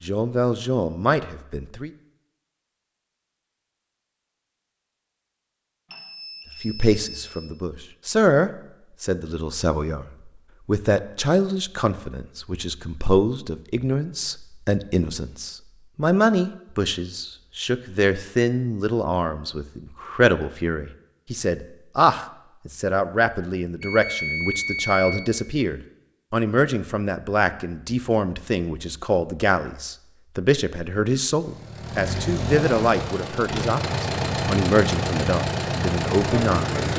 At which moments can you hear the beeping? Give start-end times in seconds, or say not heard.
5.9-7.4, 23.8-25.3.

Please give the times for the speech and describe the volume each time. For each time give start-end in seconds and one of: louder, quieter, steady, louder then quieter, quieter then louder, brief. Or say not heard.
0.0-1.9 brief
6.6-36.9 steady.